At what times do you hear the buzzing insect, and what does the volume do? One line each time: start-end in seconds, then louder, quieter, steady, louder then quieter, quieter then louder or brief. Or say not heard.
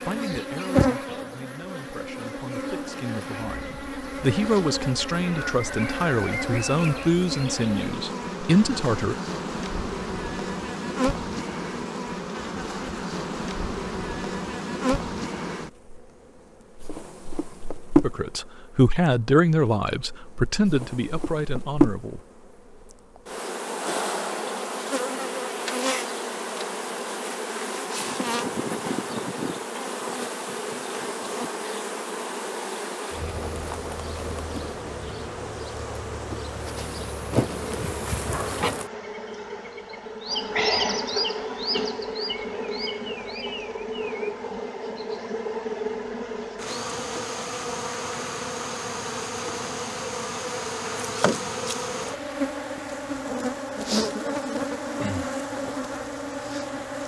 0.0-57.0 steady.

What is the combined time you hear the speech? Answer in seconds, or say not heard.
13 s.